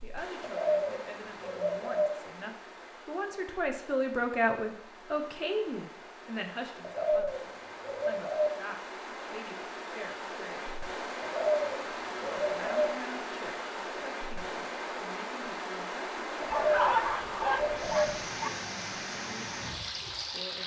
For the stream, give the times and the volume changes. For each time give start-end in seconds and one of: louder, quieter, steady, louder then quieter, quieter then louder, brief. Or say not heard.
0.0-20.6 louder.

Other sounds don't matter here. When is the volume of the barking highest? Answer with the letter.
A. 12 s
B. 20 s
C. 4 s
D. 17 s
D.